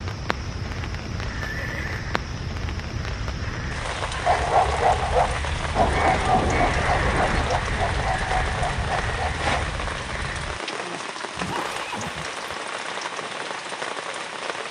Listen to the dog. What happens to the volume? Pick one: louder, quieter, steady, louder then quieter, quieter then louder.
quieter.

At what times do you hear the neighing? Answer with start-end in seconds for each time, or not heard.
1.4-2.0, 5.8-7.5, 11.3-12.4.